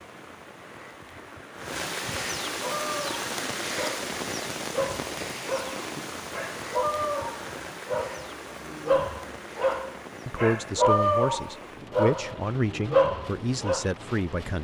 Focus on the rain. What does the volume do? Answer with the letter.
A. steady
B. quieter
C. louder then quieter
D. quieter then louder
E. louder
B.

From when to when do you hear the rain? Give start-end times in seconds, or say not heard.
0.0-14.5.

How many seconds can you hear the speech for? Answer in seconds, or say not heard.
4 s.